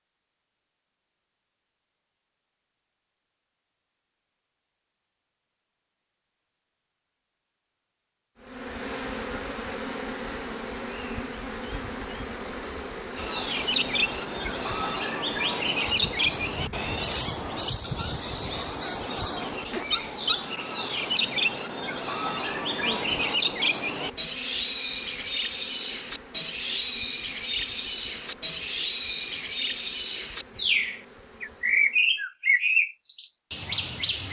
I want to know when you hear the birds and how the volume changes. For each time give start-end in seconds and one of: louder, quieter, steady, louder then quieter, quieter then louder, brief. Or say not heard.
13.2-34.2 steady.